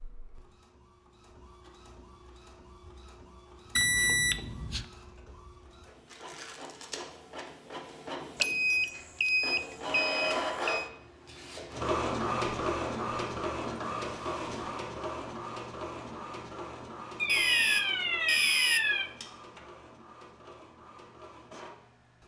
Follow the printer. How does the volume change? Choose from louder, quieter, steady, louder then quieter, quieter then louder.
louder then quieter.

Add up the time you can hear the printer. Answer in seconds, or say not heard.
22 s.